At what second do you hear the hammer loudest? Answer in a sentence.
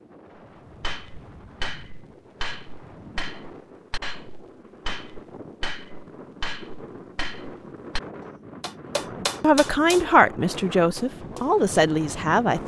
The loudest moment of the hammer is at 9 seconds.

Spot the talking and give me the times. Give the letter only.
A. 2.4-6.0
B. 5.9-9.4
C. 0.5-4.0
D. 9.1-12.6
D.